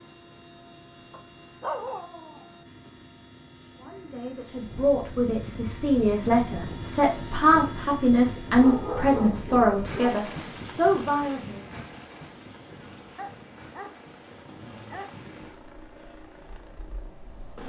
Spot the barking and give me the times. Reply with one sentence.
The barking can be heard from 1.1 to 2.5 s, from 8.6 to 10.2 s and from 13.2 to 15.1 s.